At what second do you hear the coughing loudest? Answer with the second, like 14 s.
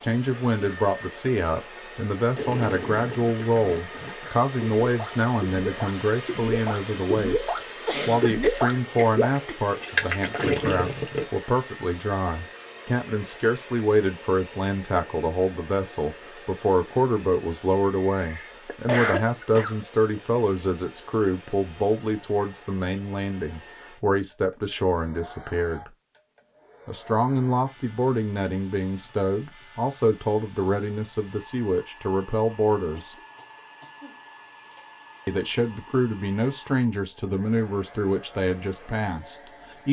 19 s.